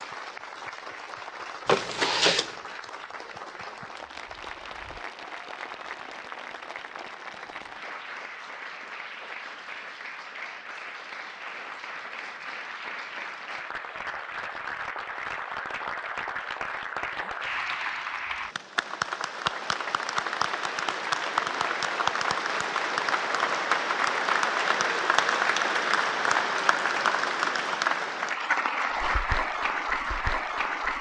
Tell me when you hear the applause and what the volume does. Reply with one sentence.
The applause can be heard from 0.0 to 30.9 s, getting louder.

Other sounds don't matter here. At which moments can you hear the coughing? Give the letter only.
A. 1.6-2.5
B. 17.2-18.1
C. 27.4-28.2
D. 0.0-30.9
A.